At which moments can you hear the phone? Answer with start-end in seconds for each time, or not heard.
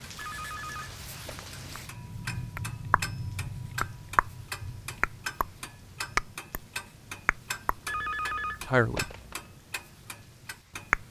0.1-1.6, 7.8-9.4.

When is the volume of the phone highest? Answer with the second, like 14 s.
8 s.